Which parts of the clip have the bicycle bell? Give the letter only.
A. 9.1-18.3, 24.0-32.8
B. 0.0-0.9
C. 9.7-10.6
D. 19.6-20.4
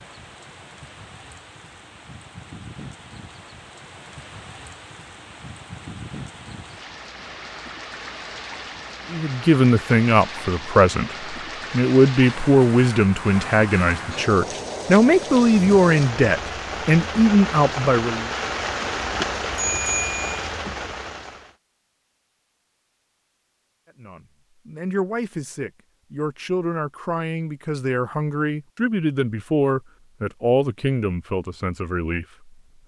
D.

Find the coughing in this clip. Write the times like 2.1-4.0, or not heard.
not heard.